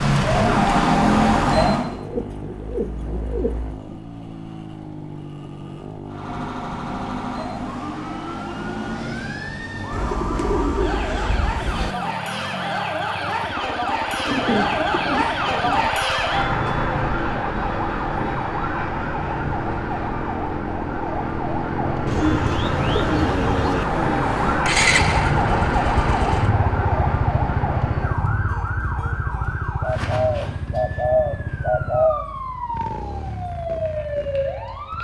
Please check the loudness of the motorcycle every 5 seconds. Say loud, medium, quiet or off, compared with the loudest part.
medium, medium, medium, medium, loud, loud, medium.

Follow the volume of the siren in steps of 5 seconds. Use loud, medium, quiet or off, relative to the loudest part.
loud, quiet, medium, medium, medium, medium, quiet.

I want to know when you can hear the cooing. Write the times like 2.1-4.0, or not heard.
1.9-3.8, 9.9-11.9, 14.2-15.9, 22.1-23.9, 29.8-32.2.